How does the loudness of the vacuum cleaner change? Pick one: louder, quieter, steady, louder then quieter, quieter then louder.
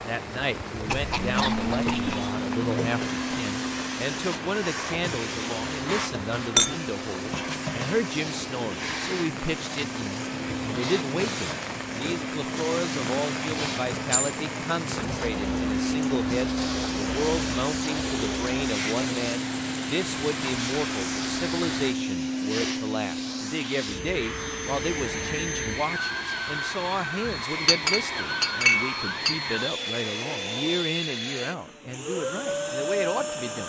steady.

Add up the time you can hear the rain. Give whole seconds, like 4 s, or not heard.
22 s.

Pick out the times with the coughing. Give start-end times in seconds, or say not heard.
0.8-2.4.